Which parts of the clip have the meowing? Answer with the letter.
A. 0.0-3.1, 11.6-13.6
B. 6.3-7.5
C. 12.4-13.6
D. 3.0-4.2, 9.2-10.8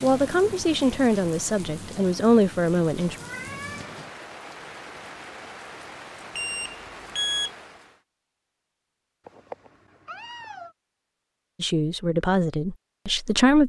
D.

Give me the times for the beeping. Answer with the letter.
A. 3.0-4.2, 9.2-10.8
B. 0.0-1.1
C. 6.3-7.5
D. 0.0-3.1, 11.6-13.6
C.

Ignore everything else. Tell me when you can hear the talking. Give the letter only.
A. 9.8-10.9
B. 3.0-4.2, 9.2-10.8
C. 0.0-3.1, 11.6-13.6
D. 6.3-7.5
C.